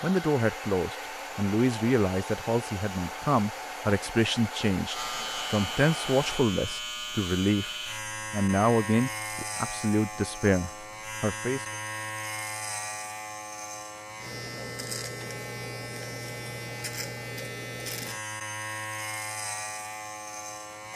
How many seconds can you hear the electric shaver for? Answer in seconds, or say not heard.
16 s.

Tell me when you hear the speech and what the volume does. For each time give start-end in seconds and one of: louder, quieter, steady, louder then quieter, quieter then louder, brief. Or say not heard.
0.0-11.7 steady.